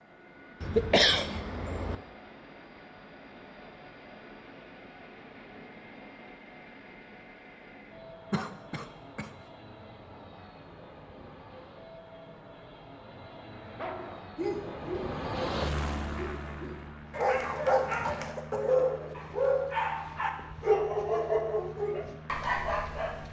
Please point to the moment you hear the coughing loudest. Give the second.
1 s.